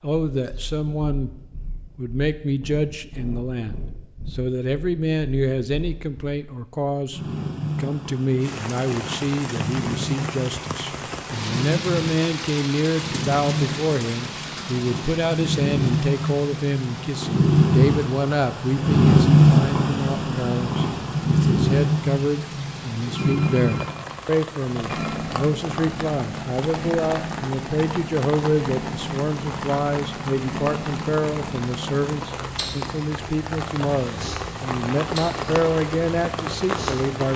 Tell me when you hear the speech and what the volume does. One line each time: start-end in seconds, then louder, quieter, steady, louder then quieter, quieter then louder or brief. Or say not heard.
0.0-1.3 brief
1.9-37.3 steady.